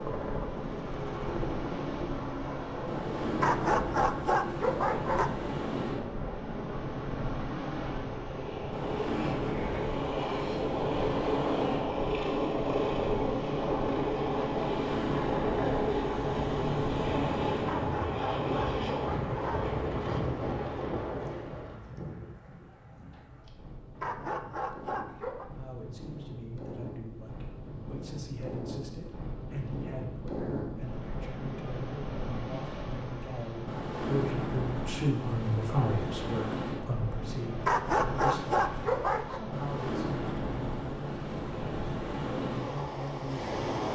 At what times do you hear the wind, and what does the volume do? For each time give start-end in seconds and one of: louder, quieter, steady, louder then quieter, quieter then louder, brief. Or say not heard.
0.0-43.9 quieter then louder.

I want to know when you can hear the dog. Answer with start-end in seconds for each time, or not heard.
3.4-5.3, 17.6-19.8, 23.9-25.4, 37.6-39.4.